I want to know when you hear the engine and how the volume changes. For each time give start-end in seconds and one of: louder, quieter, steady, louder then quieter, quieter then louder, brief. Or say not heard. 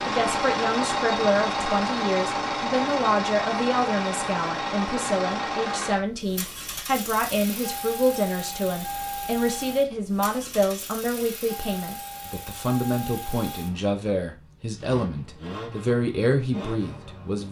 0.0-17.4 quieter.